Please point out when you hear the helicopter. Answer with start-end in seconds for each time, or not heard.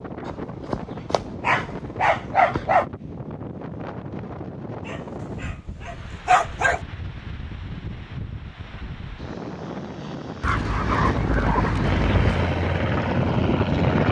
11.8-14.0.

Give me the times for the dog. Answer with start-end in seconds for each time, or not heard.
0.2-2.9, 4.8-6.8, 10.4-12.3.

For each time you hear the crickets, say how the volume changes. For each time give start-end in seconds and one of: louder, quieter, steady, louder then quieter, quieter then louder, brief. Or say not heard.
not heard.